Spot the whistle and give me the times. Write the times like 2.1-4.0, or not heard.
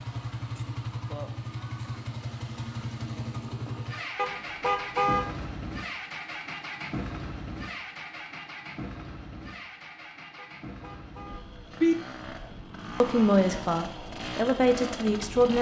not heard.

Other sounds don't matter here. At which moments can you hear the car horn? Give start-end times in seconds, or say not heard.
4.2-5.5, 10.3-11.9.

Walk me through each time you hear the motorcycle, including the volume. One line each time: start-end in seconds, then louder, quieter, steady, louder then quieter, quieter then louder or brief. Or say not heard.
0.0-15.5 quieter then louder.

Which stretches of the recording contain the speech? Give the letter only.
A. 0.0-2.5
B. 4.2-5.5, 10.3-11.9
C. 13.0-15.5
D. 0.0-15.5
C.